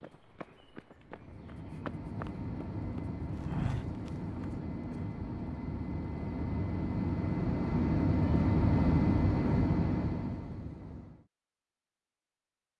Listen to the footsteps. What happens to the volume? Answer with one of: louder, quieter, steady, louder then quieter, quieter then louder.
louder.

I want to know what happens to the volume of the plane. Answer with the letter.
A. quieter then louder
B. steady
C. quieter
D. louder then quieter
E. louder
E.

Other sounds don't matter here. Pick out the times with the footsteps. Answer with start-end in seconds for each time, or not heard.
0.0-4.5.